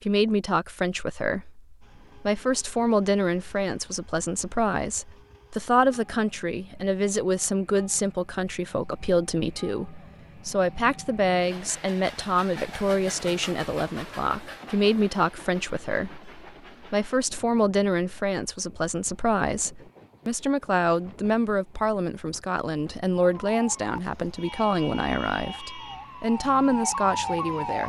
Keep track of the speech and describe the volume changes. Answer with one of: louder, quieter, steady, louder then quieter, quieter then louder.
steady.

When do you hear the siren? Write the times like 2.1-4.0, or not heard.
23.4-27.8.